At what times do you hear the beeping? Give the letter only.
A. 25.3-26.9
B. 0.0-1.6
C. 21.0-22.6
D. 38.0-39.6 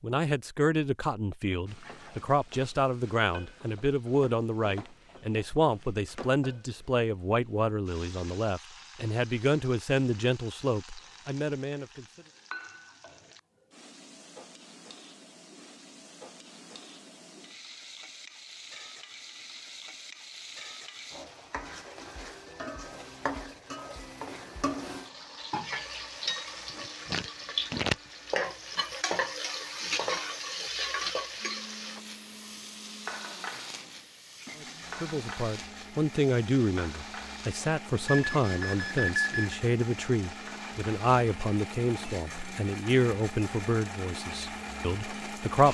D.